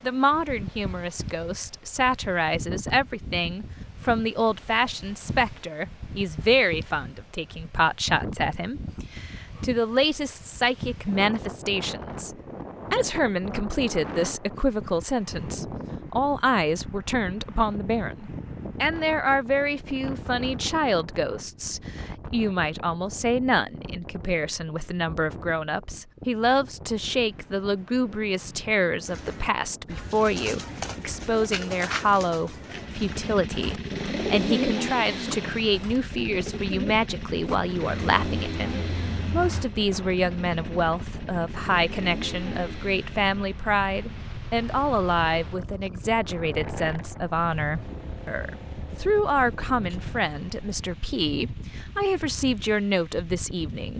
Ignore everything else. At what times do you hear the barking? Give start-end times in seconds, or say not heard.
not heard.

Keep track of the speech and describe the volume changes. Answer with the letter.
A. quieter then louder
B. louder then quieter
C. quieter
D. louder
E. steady
E.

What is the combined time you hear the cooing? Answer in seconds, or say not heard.
11 s.